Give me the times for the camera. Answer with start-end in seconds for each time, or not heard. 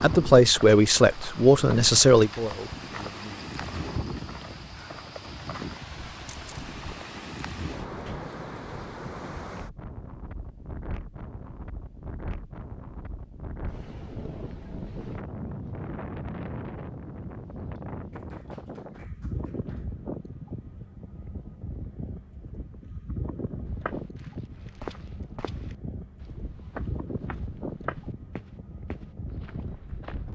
6.2-6.7.